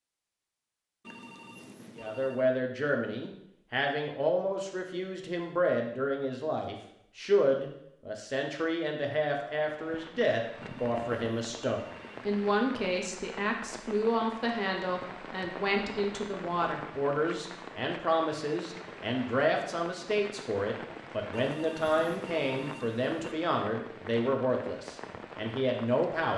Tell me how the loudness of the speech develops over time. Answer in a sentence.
The volume of the speech stays about the same.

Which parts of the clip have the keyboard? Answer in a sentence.
The keyboard can't be heard in this clip.